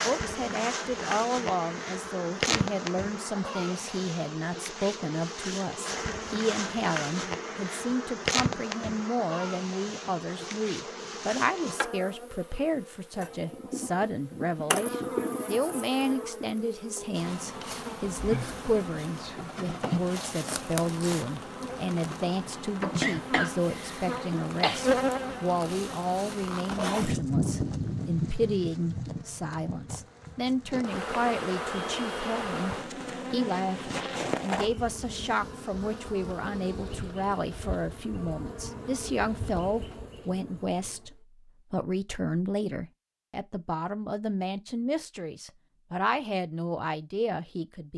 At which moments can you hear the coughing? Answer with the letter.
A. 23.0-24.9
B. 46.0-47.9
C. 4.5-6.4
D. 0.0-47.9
A.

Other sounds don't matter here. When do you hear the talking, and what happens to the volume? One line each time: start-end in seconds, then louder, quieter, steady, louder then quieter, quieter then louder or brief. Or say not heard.
0.0-47.9 steady.